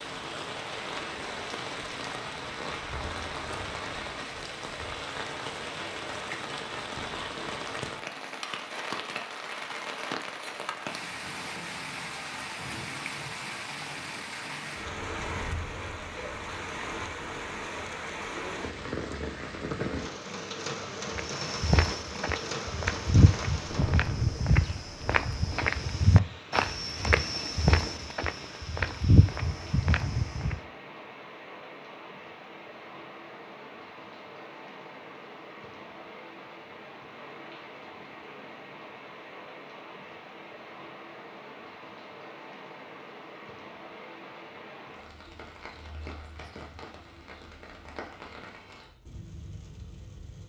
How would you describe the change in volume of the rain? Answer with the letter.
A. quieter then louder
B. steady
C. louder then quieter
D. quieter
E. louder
D.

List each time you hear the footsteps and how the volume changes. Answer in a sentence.
The footsteps can be heard from 21.1 to 30.6 s, at a steady volume.